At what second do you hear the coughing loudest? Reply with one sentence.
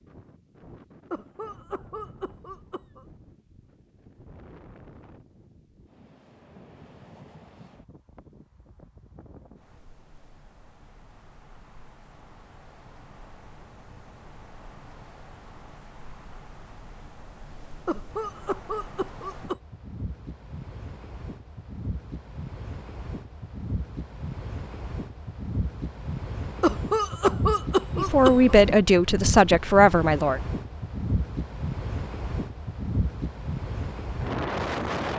The loudest moment of the coughing is at 27 seconds.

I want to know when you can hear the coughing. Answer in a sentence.
You can hear the coughing from 1.1 to 3.0 s, from 17.9 to 19.6 s and from 26.6 to 28.6 s.